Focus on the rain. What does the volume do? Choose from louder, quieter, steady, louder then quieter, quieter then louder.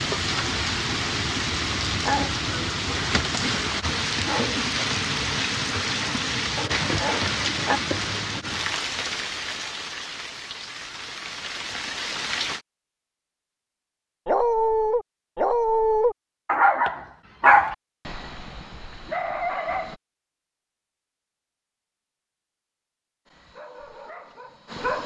quieter.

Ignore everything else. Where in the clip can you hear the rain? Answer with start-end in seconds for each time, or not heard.
0.0-12.6.